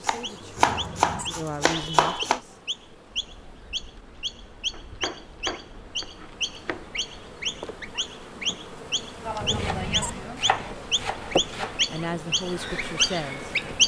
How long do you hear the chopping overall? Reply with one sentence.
The chopping can be heard for 7 seconds in total.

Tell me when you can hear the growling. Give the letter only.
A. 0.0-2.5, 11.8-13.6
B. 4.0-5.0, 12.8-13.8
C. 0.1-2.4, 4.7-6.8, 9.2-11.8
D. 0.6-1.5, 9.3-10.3
D.